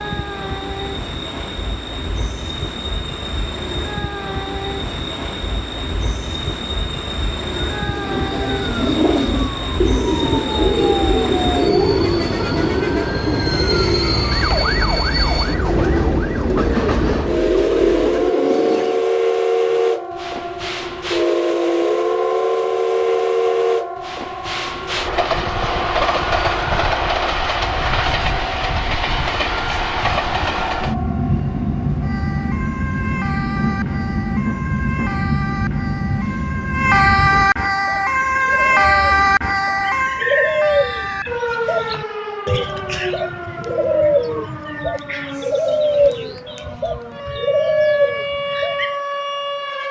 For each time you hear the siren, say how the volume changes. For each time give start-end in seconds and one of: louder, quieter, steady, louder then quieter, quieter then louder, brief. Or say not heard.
7.7-49.8 louder then quieter.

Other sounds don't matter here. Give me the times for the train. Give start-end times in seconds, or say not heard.
0.0-37.5.